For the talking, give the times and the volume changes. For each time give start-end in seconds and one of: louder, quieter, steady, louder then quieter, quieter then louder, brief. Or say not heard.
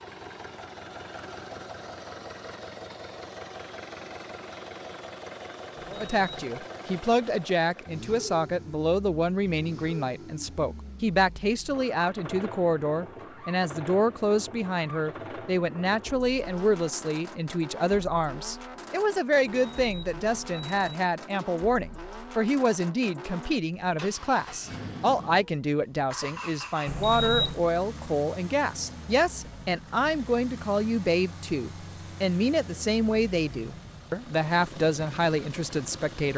5.9-36.3 steady.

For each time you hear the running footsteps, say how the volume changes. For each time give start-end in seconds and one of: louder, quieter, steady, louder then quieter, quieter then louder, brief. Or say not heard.
not heard.